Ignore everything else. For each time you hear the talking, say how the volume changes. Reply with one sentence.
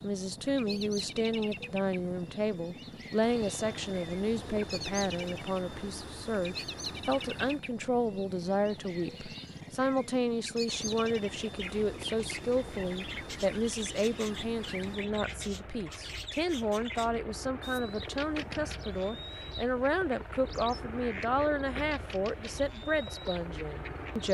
You can hear the talking from 0.0 to 24.2 s, at a steady volume.